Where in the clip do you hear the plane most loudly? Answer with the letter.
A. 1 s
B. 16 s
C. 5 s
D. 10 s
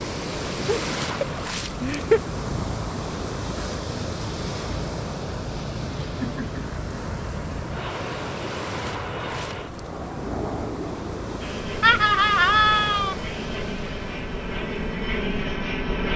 B.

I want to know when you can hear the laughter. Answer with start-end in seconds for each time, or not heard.
0.7-2.2, 6.0-6.7, 11.8-13.2.